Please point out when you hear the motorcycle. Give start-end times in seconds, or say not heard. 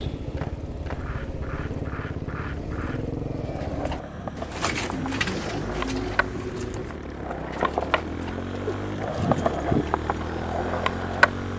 0.0-11.5.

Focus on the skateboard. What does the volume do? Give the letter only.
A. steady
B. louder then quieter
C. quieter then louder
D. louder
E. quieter
D.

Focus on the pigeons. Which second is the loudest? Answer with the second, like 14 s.
5 s.